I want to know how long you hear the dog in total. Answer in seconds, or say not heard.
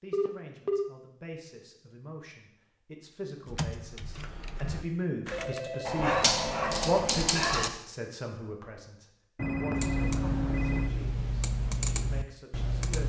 2 s.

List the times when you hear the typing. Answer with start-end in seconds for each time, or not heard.
3.5-5.6, 9.8-13.0.